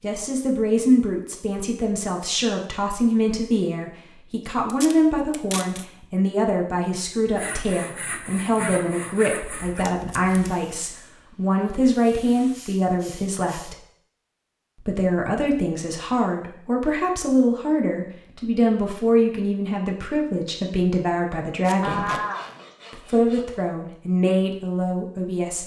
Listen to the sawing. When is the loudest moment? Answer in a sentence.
The loudest moment of the sawing is at 22 seconds.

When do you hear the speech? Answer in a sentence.
You can hear the speech from 0.0 to 13.8 s, from 14.8 to 22.1 s and from 22.9 to 25.6 s.